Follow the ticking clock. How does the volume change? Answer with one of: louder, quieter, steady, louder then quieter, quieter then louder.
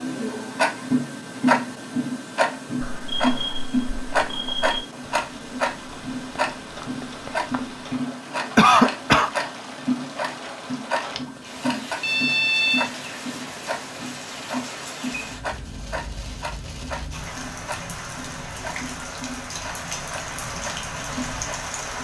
quieter.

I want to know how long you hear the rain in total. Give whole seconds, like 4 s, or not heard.
17 s.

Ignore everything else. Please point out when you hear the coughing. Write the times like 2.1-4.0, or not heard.
8.6-9.3.